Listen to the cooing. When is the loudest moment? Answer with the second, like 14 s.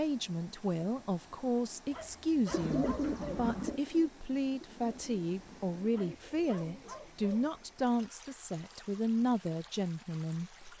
3 s.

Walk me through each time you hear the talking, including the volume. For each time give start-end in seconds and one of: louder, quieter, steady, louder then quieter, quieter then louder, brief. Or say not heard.
0.0-10.7 steady.